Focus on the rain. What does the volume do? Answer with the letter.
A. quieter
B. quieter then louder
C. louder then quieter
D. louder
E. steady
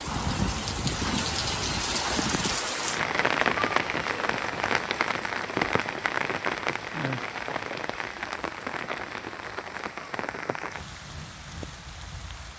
A.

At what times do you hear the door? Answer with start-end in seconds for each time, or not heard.
0.1-1.4.